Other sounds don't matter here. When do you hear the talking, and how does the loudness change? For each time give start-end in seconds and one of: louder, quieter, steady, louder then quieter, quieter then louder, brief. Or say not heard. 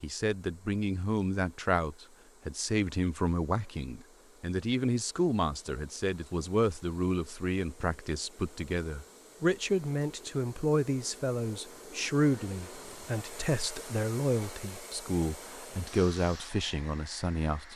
0.0-17.7 steady.